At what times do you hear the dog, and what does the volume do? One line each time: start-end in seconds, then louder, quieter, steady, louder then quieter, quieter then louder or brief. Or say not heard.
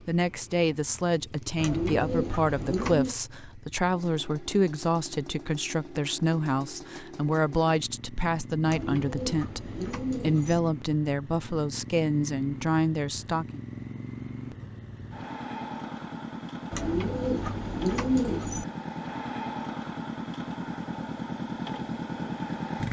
not heard.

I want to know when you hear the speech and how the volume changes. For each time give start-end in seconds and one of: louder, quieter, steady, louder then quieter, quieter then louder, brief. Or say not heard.
0.1-13.6 steady.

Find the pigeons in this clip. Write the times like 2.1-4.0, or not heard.
1.6-3.1, 8.7-10.6, 16.7-18.6.